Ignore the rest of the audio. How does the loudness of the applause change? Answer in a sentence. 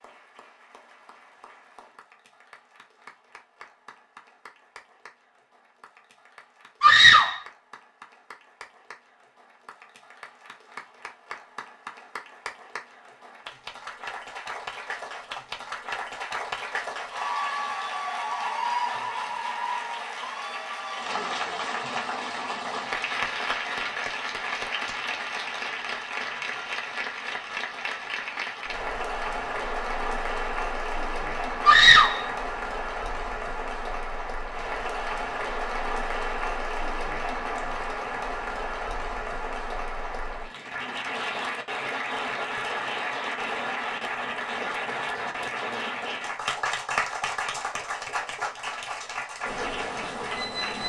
The volume of the applause goes up.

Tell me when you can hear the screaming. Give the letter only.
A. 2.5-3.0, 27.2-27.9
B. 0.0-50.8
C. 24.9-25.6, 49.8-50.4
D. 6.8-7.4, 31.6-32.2
D.